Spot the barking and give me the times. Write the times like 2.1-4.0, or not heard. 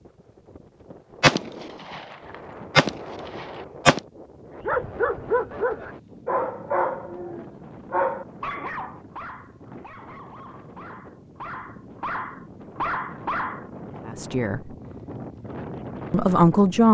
4.6-13.7.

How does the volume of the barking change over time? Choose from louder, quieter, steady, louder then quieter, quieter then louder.
quieter then louder.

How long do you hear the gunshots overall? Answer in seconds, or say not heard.
2 s.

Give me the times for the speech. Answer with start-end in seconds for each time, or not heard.
14.1-14.7, 16.1-16.8.